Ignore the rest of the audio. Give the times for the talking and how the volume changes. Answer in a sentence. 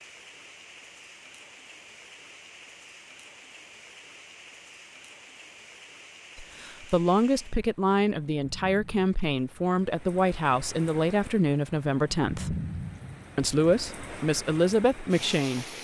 You can hear the talking from 6.3 to 12.6 s, at a steady volume; and briefly from 13.3 to 15.7 s.